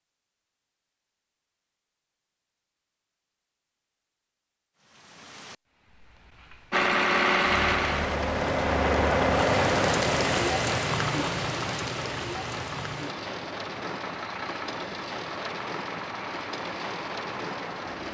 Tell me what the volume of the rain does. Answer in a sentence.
The volume of the rain goes up, then down.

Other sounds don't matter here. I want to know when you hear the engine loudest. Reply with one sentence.
The volume of the engine peaks at 7 seconds.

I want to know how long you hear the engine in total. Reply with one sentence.
You can hear the engine for 11 seconds altogether.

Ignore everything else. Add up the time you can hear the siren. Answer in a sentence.
You can't hear the siren here.